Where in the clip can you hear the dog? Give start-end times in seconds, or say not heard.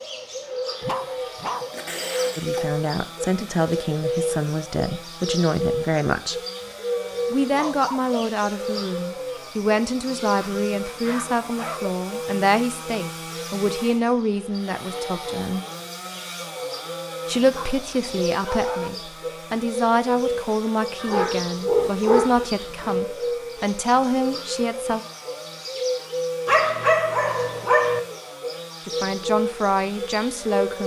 0.8-2.7, 6.6-8.2, 10.4-11.9, 17.5-18.9, 21.0-22.9, 26.4-28.0.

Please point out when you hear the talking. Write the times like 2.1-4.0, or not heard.
2.4-6.4, 7.3-15.7, 17.2-25.0, 28.9-30.8.